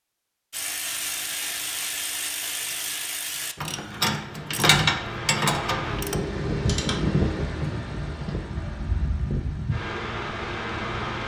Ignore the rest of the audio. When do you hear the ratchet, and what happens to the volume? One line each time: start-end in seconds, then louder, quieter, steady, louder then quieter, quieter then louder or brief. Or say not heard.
0.5-6.2 louder.